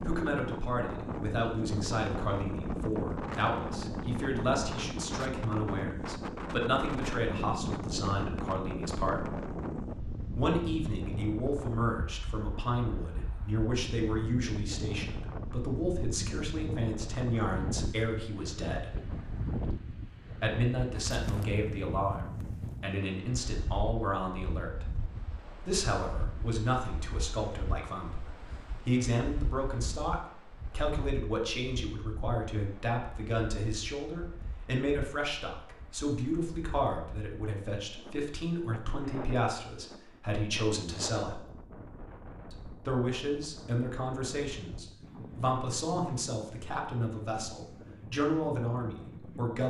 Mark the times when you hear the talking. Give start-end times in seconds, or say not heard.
0.0-9.3, 10.3-18.9, 20.4-24.9, 25.6-41.5, 42.5-49.6.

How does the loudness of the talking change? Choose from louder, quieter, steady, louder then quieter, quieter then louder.
steady.